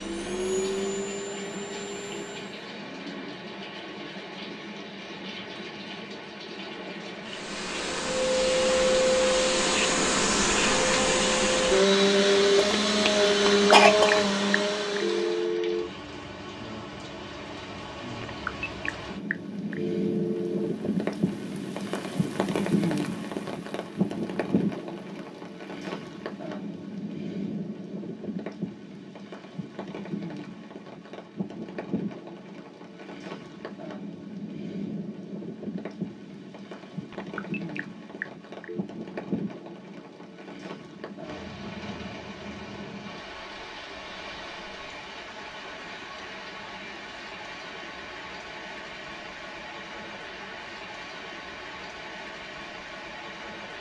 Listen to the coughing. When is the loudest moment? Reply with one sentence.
The volume of the coughing peaks at 14 seconds.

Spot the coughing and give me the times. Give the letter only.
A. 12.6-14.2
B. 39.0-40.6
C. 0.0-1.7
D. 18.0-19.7
A.